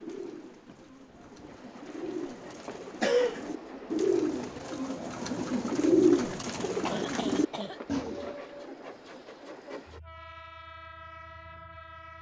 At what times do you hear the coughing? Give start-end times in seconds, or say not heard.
3.0-3.5, 6.8-7.8.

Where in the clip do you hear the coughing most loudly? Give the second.
3 s.